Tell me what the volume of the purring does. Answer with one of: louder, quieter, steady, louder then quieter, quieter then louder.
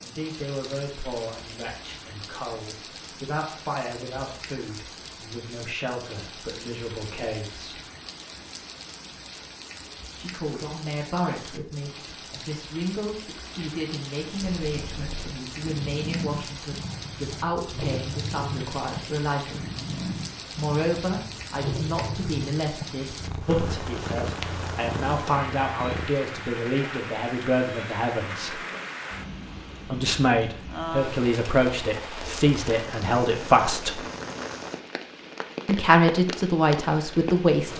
steady.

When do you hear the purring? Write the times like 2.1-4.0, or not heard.
14.4-26.1.